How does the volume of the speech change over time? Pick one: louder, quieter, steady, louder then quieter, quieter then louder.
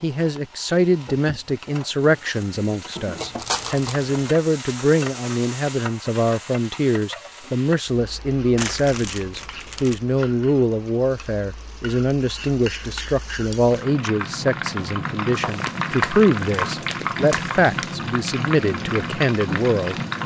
steady.